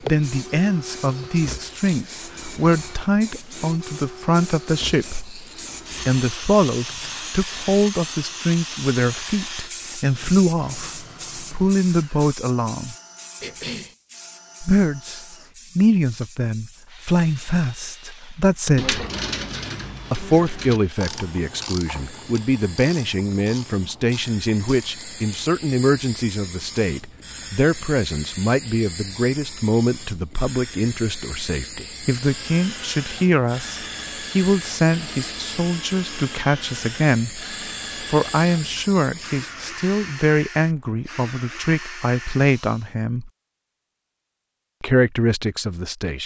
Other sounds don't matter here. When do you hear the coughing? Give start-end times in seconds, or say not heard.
13.4-13.9.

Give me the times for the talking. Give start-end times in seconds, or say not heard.
0.1-5.3, 6.0-12.9, 14.6-19.1, 20.1-37.4, 38.0-43.3, 44.8-46.2.